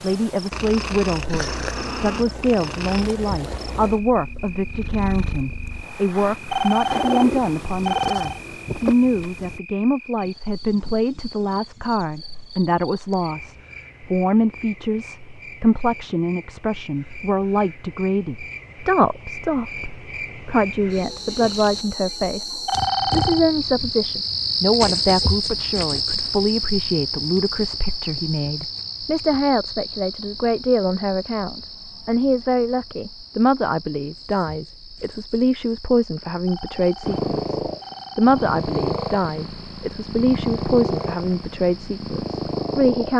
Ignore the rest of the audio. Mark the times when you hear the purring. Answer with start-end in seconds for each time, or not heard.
0.0-9.6, 37.0-43.1.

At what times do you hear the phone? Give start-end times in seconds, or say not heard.
6.5-8.4, 22.6-23.4, 36.5-38.5.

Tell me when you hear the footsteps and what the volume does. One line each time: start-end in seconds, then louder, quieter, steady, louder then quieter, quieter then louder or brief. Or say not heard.
not heard.